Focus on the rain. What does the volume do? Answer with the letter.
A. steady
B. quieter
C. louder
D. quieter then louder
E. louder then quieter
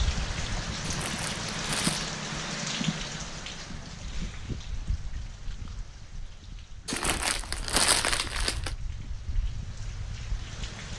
B.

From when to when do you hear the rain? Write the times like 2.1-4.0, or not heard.
0.0-10.9.